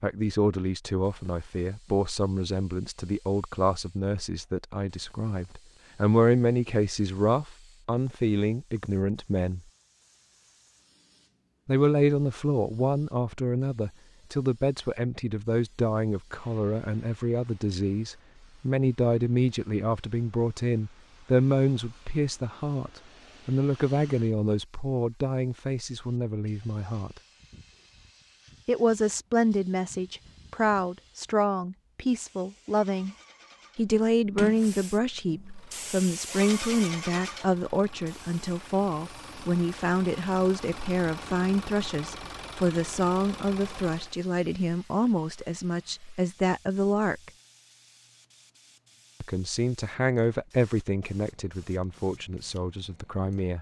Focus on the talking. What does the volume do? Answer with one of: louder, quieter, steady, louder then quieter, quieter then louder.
steady.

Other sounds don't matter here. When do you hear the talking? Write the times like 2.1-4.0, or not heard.
0.0-9.6, 11.7-27.2, 28.6-33.1, 33.8-47.3, 49.2-53.5.